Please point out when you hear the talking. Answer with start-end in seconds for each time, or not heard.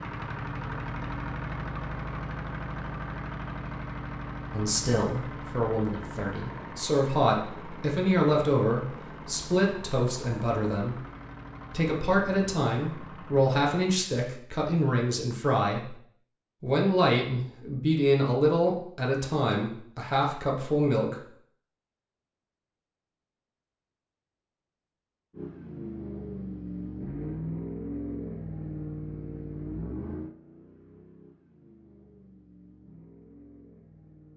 4.5-11.0, 11.7-15.9, 16.6-21.1.